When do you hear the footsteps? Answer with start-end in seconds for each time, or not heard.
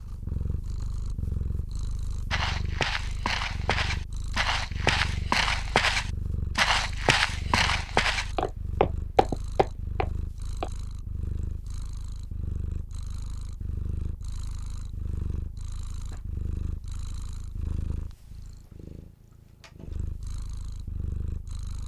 2.3-10.7.